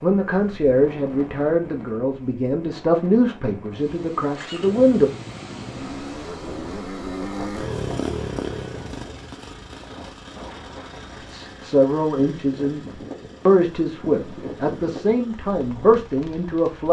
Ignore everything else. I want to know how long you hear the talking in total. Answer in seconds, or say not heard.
11 s.